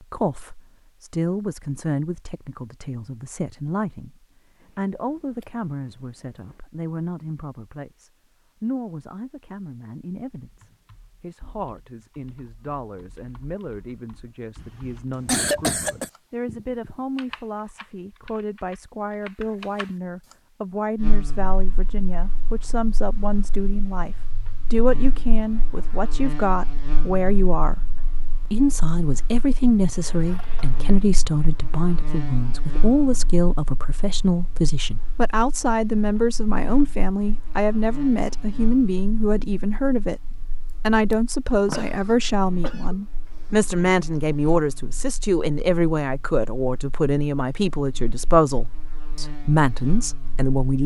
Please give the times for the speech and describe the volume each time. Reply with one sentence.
You can hear the speech from 0.0 to 50.8 s, getting louder.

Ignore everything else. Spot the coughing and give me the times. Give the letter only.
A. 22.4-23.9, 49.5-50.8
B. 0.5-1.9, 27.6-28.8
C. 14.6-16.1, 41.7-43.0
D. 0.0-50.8
C.